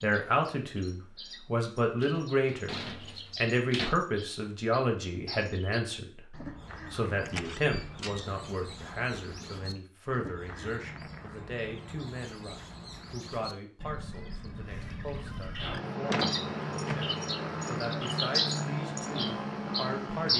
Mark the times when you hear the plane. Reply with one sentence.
You can hear the plane from 15.6 to 20.3 s.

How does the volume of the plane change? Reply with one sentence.
The volume of the plane stays about the same.